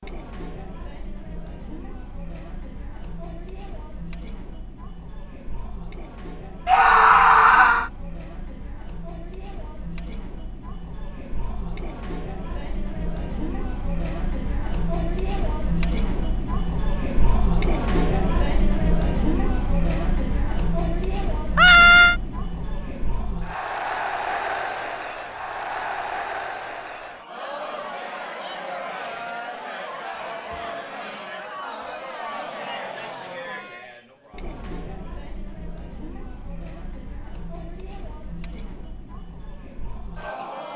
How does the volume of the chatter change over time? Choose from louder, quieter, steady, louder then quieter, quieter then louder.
louder then quieter.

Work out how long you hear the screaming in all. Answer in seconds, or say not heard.
2 s.